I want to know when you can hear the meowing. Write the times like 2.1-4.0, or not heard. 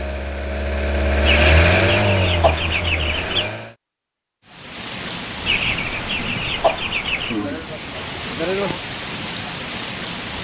not heard.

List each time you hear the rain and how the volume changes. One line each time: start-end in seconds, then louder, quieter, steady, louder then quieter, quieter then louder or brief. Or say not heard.
4.5-10.3 quieter then louder.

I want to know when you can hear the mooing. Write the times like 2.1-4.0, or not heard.
7.3-8.8.